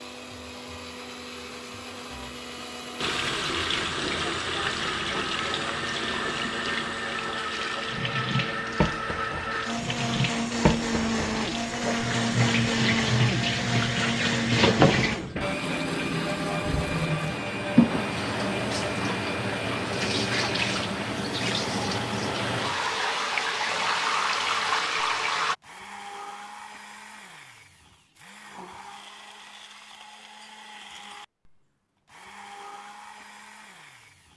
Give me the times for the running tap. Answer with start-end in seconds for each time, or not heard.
3.0-25.6.